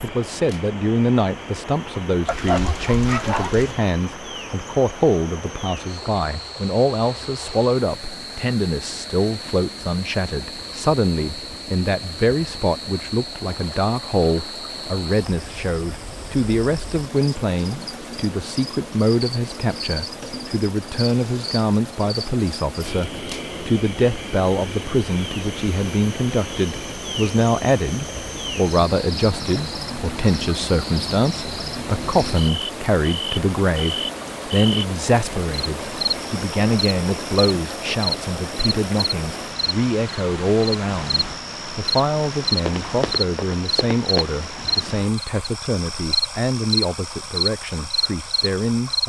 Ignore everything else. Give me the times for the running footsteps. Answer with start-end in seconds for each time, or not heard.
42.6-44.4.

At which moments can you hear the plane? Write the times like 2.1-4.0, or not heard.
not heard.